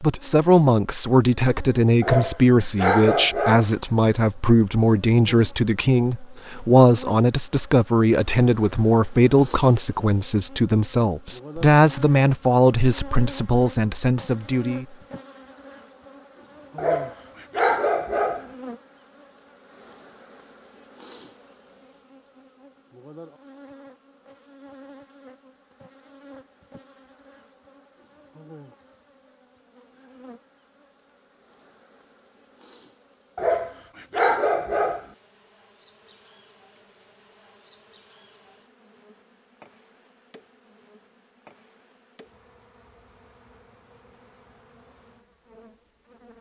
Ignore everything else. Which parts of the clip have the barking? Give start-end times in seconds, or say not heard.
2.0-3.7, 16.8-18.4, 33.4-35.0.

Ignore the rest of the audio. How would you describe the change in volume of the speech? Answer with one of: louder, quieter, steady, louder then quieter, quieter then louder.
steady.